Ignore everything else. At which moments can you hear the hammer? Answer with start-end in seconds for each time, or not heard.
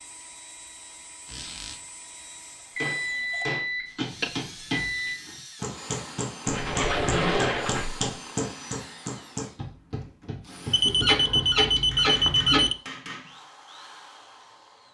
2.8-13.3.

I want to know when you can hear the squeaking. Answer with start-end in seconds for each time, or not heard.
1.2-1.8, 6.5-8.1, 10.8-12.7.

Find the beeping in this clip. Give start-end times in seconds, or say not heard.
2.8-5.2, 10.7-12.8.